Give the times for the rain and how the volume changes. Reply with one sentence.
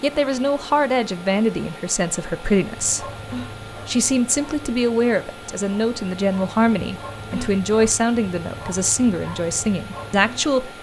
The rain can't be heard in this clip.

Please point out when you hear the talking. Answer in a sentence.
The talking can be heard from 0.0 to 3.1 s and from 3.9 to 10.7 s.